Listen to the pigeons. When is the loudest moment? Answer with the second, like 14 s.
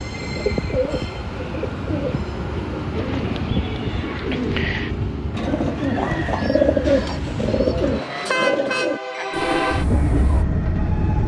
7 s.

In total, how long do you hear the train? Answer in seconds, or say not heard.
11 s.